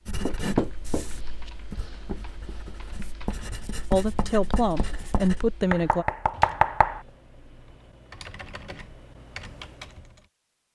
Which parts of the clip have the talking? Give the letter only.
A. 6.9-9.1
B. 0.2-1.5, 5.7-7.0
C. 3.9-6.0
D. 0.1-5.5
C.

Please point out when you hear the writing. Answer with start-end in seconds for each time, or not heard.
0.1-5.5.